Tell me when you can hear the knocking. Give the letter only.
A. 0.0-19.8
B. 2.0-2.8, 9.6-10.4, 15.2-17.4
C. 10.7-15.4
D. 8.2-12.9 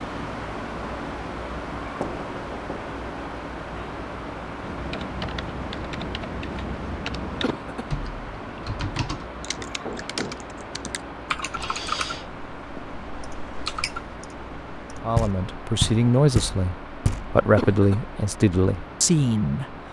B.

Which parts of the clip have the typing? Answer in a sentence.
The typing can be heard from 4.6 to 15.0 s.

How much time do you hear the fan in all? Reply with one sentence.
The fan can be heard for 20 seconds in total.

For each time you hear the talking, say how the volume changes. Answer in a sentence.
You can hear the talking from 15.0 to 19.8 s, at a steady volume.